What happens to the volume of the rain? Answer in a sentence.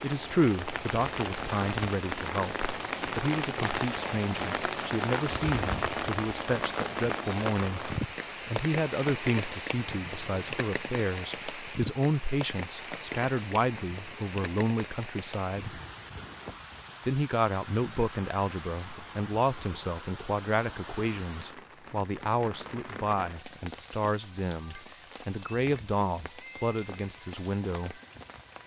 The loudness of the rain goes down.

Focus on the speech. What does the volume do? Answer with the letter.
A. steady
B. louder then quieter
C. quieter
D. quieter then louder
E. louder
A.